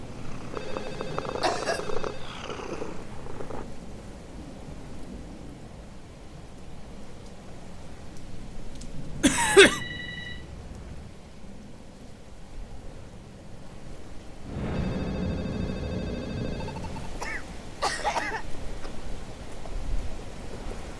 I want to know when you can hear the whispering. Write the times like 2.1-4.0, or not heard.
not heard.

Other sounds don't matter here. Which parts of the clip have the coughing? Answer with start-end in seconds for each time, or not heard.
1.4-1.8, 9.2-9.8, 17.2-18.9.